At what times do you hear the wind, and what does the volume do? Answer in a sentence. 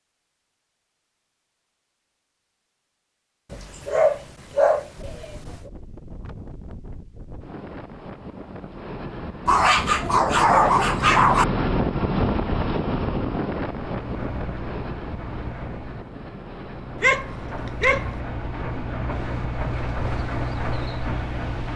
You can hear the wind from 5.0 to 21.7 s, getting louder then quieter.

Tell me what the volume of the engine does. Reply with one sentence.
The volume of the engine goes up.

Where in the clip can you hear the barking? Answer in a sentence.
The barking can be heard from 3.5 to 5.7 s, from 9.4 to 11.4 s and from 17.0 to 18.1 s.